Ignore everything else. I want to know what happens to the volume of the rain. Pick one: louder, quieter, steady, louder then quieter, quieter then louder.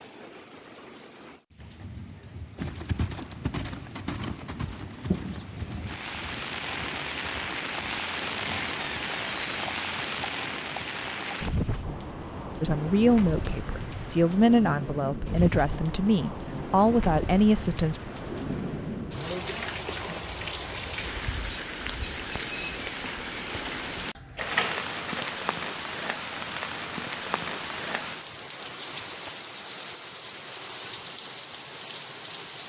louder.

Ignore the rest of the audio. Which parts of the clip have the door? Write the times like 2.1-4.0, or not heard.
8.4-9.8, 24.4-25.4.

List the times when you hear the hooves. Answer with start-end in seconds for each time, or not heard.
2.5-11.4.